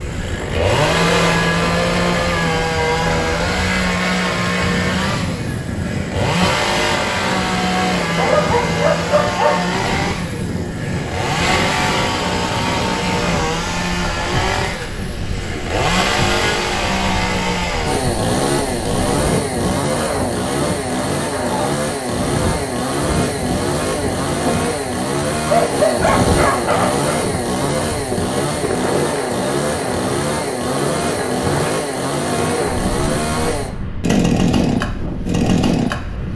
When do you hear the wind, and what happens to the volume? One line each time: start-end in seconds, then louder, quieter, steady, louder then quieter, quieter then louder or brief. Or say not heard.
0.0-36.3 steady.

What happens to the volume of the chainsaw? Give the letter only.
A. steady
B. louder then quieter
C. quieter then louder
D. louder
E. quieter
A.